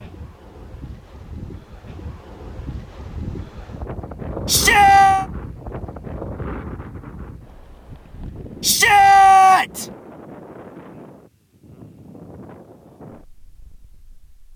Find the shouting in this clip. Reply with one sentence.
You can hear the shouting from 4.5 to 5.2 s and from 8.6 to 9.8 s.